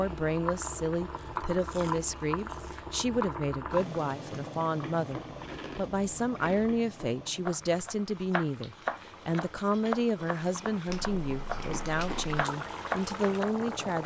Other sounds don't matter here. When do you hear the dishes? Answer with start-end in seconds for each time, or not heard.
not heard.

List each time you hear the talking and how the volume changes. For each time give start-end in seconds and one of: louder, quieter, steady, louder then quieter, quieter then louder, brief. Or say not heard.
0.0-14.0 steady.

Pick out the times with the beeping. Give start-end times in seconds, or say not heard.
not heard.